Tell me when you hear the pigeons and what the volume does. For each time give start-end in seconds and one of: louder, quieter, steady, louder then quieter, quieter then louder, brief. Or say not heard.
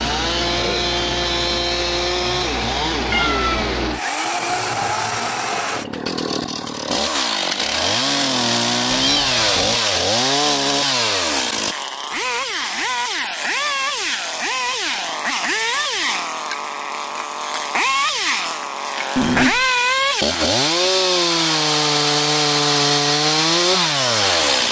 not heard.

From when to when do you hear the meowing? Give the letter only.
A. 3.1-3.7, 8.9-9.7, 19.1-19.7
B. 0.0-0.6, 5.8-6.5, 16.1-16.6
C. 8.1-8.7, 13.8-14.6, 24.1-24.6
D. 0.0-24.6
A.